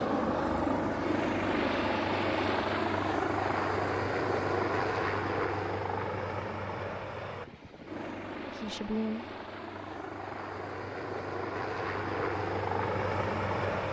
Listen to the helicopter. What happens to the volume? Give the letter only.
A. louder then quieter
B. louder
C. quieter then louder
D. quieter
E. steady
C.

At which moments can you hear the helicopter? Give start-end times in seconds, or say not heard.
0.0-13.8.